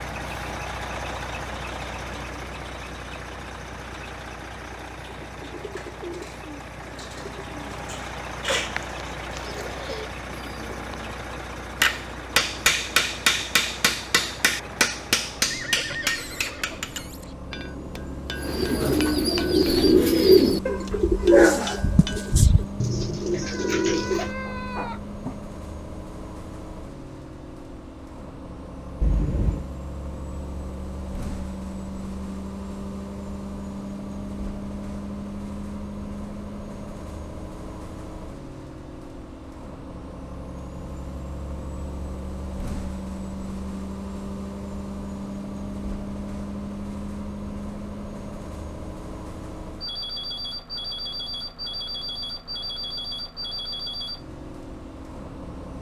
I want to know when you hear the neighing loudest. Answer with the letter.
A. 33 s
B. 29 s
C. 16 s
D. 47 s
C.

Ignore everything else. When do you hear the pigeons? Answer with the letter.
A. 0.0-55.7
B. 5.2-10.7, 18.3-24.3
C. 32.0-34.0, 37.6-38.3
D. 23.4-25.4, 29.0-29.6
B.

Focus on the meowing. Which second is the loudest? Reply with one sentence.
The volume of the meowing peaks at 29 seconds.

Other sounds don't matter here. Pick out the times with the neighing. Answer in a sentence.
You can hear the neighing from 15.5 to 17.3 s.